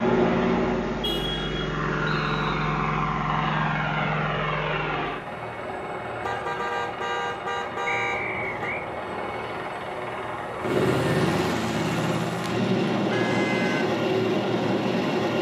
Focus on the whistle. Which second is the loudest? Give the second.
8 s.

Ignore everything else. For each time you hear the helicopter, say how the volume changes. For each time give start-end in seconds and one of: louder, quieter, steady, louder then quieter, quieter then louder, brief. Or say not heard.
0.0-15.3 quieter then louder.